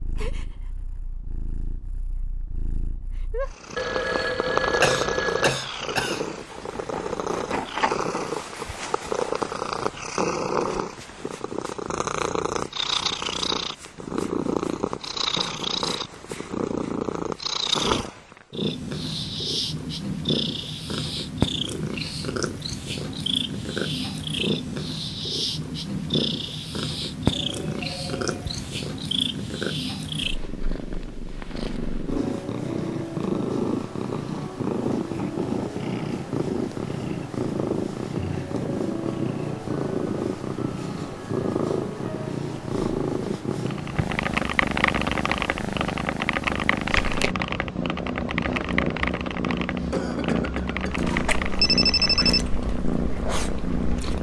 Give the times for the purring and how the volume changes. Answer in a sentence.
The purring can be heard from 0.0 to 54.1 s, at a steady volume.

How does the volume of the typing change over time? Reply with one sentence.
The volume of the typing goes down.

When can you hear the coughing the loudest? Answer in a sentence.
The loudest moment of the coughing is at 5 seconds.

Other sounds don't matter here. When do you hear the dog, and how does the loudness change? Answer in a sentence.
The dog can't be heard in this clip.